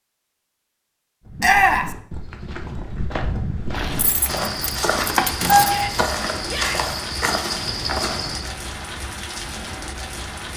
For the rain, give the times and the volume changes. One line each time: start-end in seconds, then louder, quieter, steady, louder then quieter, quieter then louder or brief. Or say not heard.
3.7-10.5 steady.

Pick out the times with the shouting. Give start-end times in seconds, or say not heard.
1.4-1.9, 5.6-7.0.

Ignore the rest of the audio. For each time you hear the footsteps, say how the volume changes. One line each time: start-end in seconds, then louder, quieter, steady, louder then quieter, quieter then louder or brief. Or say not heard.
1.2-8.6 louder.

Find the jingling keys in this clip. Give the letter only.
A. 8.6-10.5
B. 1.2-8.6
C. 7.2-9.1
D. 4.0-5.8
D.